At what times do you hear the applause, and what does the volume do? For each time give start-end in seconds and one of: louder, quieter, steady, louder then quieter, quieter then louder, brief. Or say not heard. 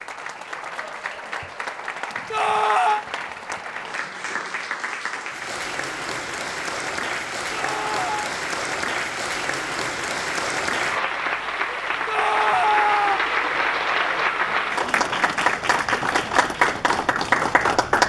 0.0-18.0 louder.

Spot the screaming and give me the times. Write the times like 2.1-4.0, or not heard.
2.3-3.0, 7.5-8.3, 12.1-13.2.